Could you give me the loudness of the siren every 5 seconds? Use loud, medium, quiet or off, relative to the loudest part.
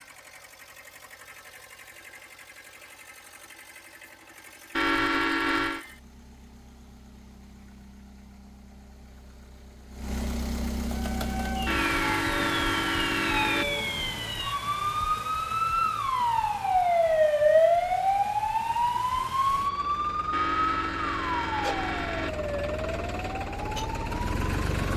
off, off, medium, loud, medium.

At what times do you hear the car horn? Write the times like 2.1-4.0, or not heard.
4.8-5.8, 11.7-13.7, 20.3-22.3.